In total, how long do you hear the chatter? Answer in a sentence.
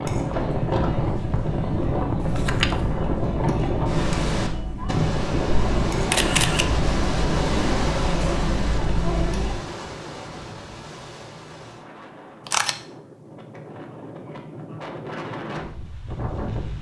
You can hear the chatter for 10 seconds altogether.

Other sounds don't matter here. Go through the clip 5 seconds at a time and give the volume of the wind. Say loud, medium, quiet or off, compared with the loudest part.
loud, loud, quiet, medium.